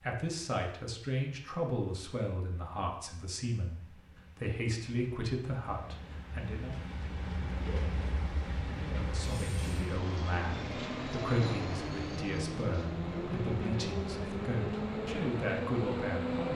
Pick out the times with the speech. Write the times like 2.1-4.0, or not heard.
0.0-6.8, 8.8-16.5.